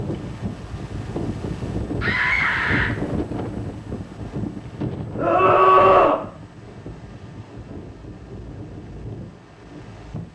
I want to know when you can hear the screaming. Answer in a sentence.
The screaming can be heard from 2.0 to 2.9 s and from 5.2 to 6.2 s.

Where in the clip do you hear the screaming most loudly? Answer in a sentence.
The loudest moment of the screaming is at 6 seconds.